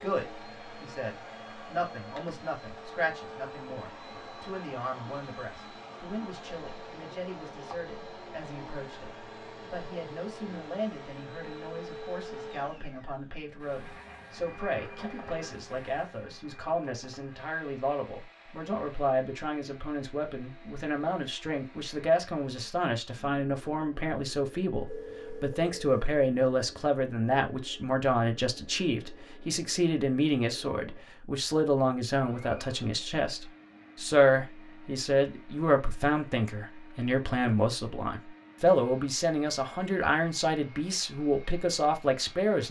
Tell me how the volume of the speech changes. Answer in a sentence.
The loudness of the speech goes up.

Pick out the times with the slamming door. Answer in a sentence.
The slamming door can't be heard in this clip.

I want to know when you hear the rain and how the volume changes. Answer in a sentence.
The rain can't be heard in this clip.